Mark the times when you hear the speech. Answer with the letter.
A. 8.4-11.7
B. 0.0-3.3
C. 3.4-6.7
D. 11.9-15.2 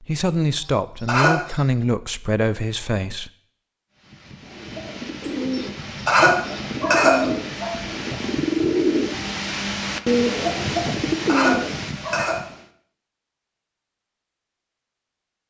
B.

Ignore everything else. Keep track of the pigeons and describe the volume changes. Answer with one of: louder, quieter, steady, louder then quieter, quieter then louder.
louder.